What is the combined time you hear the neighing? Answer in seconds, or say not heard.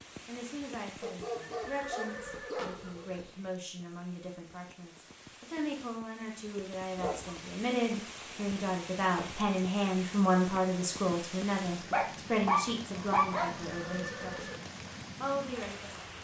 3 s.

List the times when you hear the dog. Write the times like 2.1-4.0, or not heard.
1.0-2.8, 7.0-7.4, 11.9-13.5.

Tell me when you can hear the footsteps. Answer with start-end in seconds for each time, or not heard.
not heard.